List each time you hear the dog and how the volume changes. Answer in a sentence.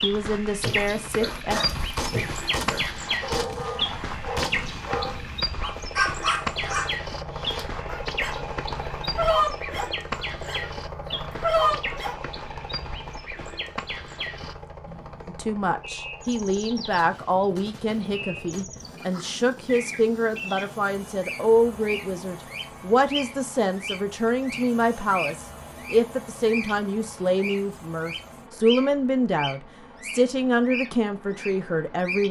You can hear the dog from 0.6 to 12.2 s, getting louder.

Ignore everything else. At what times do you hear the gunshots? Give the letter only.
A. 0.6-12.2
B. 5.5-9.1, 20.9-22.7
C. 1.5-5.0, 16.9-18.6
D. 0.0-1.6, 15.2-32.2
C.